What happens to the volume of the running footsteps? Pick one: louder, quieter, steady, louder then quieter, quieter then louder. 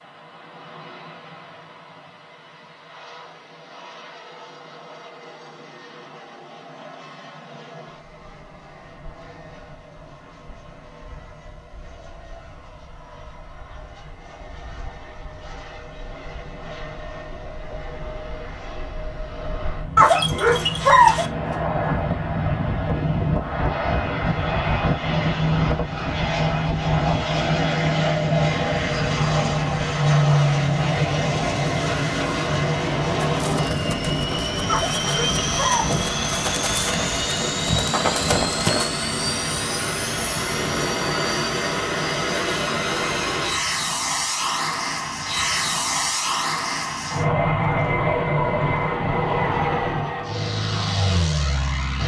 louder.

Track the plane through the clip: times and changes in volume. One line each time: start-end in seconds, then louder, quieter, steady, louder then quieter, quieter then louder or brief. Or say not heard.
0.0-52.0 louder.